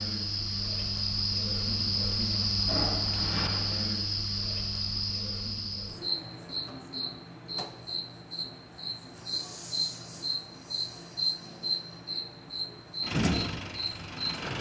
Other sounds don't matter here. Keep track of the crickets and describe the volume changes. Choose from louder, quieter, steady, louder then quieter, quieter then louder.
quieter.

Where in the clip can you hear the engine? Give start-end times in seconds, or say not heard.
13.0-14.5.